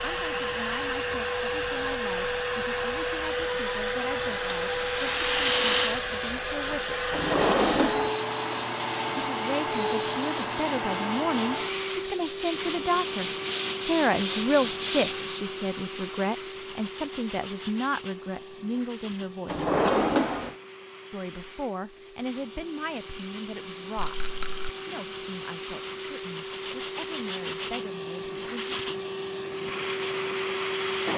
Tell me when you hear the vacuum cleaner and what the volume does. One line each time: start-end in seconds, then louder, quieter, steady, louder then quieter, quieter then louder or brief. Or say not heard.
0.0-31.1 quieter then louder.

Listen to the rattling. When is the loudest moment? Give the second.
6 s.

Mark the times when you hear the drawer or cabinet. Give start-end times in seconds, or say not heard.
7.1-8.2, 19.4-20.6.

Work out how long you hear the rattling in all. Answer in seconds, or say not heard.
2 s.